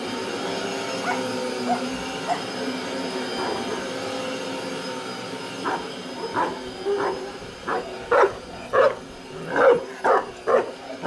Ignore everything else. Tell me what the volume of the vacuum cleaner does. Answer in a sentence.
The loudness of the vacuum cleaner goes down.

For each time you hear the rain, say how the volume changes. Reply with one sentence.
You can't hear the rain here.